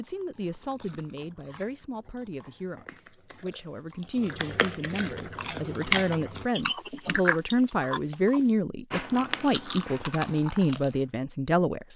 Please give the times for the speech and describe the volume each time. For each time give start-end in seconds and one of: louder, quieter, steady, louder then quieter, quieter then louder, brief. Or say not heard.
0.0-11.9 louder.